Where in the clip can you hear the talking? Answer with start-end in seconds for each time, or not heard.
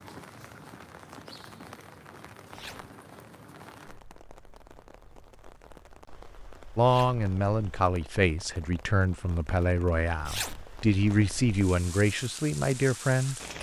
6.8-13.5.